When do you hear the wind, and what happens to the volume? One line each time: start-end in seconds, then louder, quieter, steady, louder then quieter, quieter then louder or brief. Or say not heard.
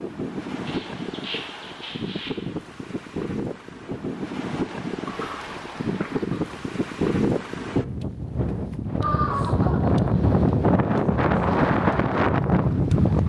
0.0-13.2 louder.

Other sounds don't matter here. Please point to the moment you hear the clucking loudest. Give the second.
9 s.